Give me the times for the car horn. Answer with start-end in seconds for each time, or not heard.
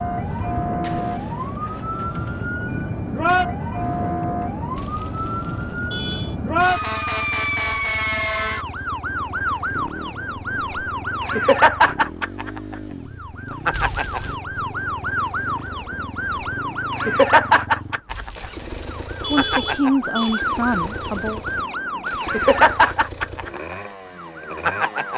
4.8-6.3, 13.7-14.4, 18.1-20.4.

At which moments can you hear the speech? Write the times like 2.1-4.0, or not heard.
19.3-21.4.